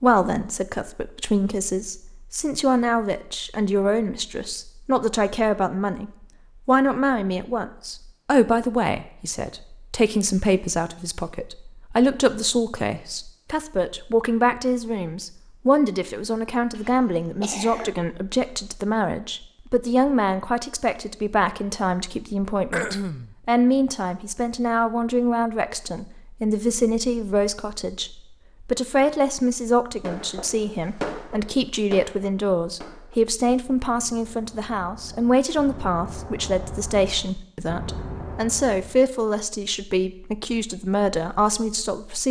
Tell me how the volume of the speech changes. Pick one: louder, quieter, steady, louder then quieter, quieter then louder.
steady.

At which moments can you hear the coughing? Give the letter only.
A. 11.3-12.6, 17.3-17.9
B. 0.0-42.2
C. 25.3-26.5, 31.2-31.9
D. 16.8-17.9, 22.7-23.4
D.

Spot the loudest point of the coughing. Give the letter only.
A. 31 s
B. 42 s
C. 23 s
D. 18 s
C.